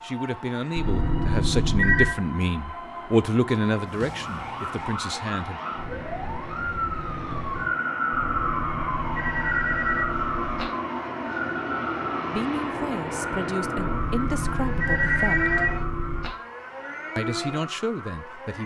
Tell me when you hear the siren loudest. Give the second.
8 s.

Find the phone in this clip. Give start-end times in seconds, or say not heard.
0.8-2.1, 8.1-10.7, 13.8-16.3.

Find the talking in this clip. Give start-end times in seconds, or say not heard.
0.0-5.6, 12.3-15.6, 17.1-18.6.